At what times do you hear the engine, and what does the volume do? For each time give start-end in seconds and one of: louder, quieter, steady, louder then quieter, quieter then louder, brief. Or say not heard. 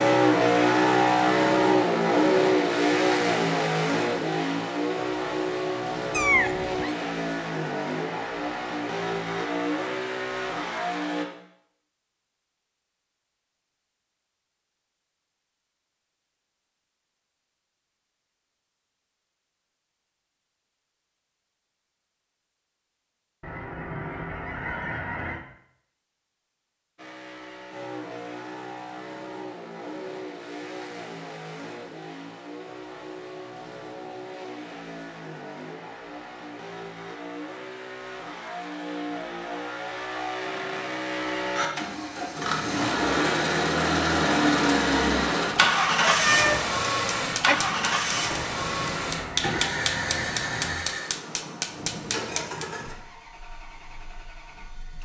0.0-11.2 quieter
26.9-54.9 louder then quieter.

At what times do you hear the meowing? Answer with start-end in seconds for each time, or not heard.
6.1-6.9, 46.0-46.6.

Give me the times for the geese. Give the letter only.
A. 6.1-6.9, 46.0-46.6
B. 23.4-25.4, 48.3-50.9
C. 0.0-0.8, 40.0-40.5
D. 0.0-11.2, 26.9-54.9
B.